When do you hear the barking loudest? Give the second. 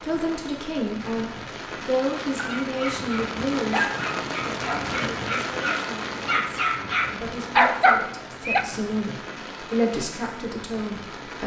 8 s.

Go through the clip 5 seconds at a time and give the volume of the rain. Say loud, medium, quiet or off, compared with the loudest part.
loud, loud, medium.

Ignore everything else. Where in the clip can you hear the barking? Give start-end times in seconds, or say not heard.
2.4-8.7.